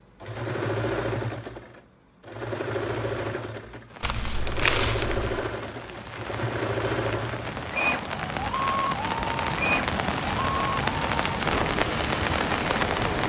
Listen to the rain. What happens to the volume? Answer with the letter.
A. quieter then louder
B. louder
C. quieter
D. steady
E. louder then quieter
B.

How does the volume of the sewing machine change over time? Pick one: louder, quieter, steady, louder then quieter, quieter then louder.
steady.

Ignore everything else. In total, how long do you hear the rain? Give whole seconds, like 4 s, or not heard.
9 s.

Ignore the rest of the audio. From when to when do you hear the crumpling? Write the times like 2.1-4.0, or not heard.
4.0-5.5.